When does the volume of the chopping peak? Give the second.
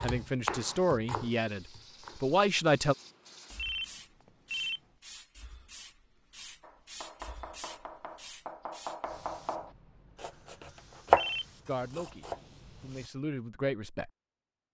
11 s.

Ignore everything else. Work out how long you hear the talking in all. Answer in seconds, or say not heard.
5 s.